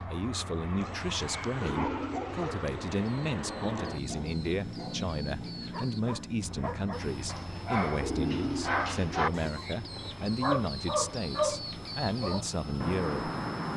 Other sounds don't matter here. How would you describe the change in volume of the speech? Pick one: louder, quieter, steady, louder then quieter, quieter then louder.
steady.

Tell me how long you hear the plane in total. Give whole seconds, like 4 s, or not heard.
14 s.